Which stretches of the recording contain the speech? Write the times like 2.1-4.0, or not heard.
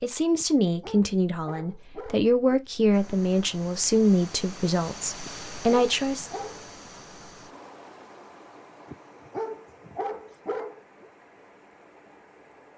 0.0-6.3.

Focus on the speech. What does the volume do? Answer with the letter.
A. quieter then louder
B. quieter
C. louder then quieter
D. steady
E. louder
D.